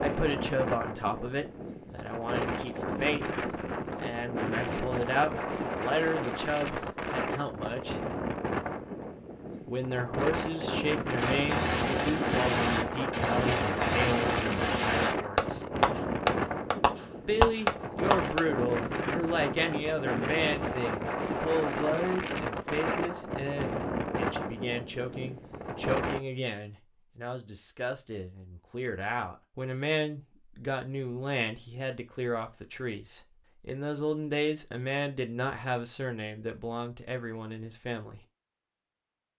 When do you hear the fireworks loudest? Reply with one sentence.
The loudest moment of the fireworks is at 18 seconds.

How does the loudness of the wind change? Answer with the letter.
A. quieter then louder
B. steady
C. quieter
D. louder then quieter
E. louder
B.